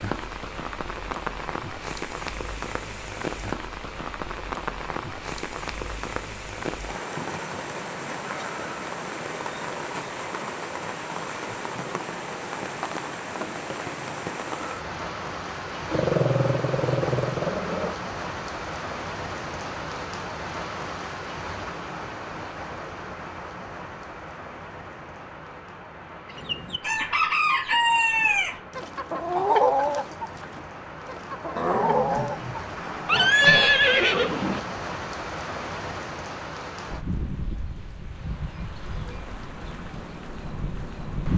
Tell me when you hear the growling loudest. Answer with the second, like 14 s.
16 s.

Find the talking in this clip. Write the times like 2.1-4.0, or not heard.
not heard.